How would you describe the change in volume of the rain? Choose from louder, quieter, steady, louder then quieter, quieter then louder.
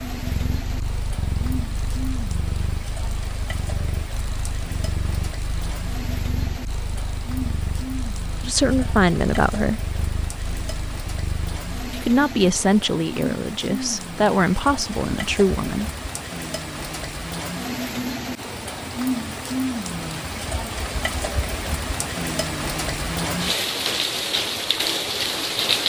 louder.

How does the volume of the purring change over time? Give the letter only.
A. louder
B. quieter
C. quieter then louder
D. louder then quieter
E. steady
E.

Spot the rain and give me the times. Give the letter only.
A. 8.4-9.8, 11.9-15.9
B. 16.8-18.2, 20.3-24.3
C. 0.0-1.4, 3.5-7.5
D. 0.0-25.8
D.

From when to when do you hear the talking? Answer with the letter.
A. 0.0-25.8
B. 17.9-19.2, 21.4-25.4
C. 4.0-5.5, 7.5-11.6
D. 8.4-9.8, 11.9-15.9
D.